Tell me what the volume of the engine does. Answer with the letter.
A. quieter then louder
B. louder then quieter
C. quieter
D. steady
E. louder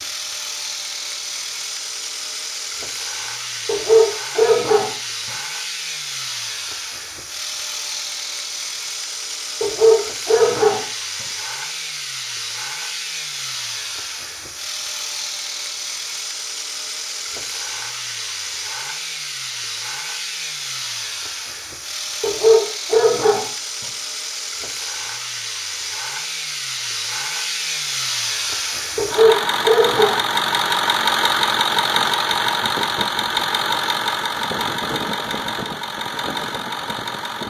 E.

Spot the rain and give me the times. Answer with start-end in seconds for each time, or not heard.
not heard.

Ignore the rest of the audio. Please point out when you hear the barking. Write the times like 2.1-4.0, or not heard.
3.6-5.3, 9.6-11.2, 22.2-23.9, 28.9-30.6.